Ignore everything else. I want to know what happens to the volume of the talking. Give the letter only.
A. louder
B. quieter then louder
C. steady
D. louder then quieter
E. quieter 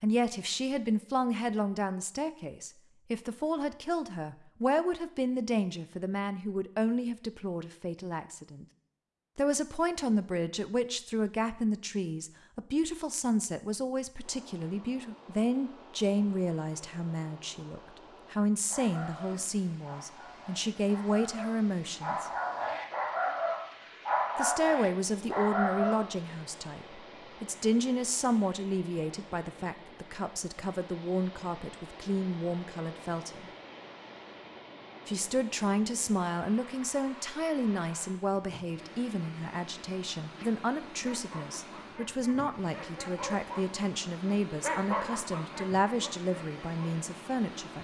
C.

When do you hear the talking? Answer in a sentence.
You can hear the talking from 0.0 to 8.7 s, from 9.3 to 22.3 s, from 24.4 to 33.5 s and from 35.0 to 47.7 s.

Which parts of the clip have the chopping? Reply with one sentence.
The chopping can't be heard in this clip.